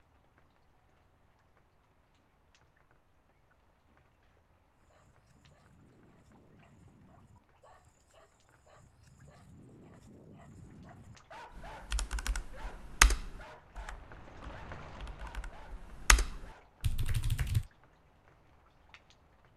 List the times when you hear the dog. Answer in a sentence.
You can hear the dog from 4.8 to 16.7 s.